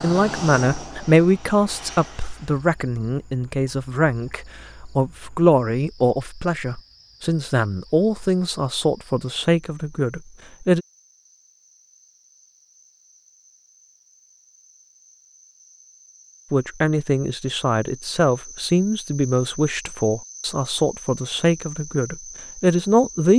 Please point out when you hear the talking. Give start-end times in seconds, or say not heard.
0.0-10.8, 16.5-23.3.